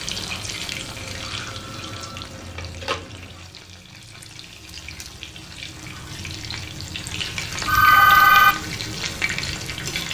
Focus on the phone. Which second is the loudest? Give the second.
8 s.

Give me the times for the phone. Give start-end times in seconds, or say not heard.
0.7-3.4, 7.7-8.6.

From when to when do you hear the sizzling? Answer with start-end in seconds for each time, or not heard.
0.0-10.0.